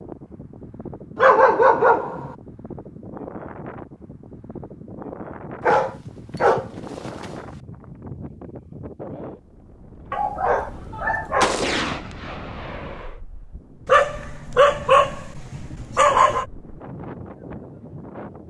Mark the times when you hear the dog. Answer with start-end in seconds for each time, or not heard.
1.1-2.3, 5.6-7.3, 10.1-11.6, 13.8-16.4.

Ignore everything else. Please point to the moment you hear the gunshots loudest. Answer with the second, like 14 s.
12 s.